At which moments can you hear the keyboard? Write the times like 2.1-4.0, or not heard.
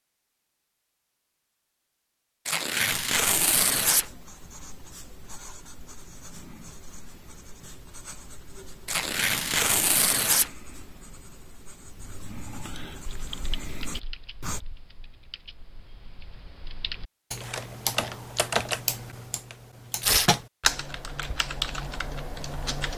13.1-22.9.